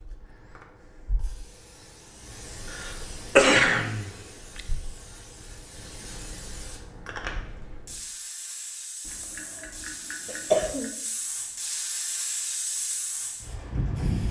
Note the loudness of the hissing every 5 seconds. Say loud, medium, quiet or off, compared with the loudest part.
quiet, medium, loud.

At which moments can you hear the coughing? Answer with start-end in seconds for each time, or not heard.
2.7-4.6, 9.1-10.9.